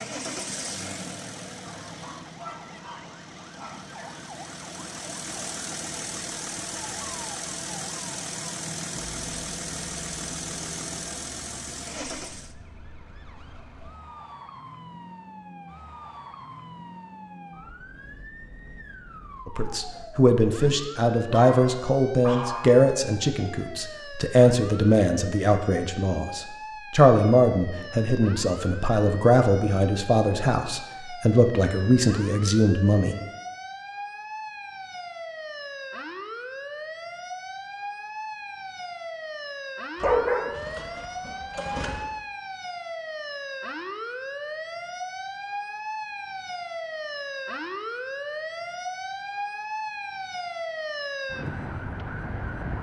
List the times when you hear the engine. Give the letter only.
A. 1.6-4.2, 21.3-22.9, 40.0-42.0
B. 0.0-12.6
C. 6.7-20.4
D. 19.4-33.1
B.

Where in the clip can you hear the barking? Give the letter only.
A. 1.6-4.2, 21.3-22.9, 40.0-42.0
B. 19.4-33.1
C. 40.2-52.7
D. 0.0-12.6
A.